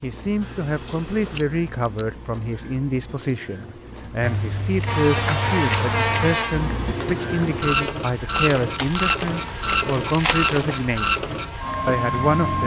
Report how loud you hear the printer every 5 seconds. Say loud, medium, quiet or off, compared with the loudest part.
quiet, loud, loud.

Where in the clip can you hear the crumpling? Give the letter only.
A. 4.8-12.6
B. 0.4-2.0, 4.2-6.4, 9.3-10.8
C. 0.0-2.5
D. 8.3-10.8
D.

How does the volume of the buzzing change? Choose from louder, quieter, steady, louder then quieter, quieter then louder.
quieter.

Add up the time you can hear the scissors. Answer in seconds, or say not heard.
5 s.